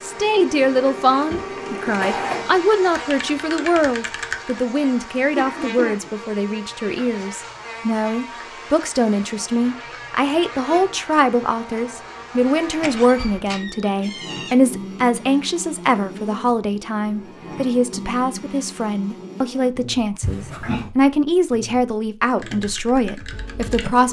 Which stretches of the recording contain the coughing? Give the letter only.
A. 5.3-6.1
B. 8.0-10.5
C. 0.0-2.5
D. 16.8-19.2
A.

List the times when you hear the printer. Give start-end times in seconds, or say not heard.
0.0-2.5.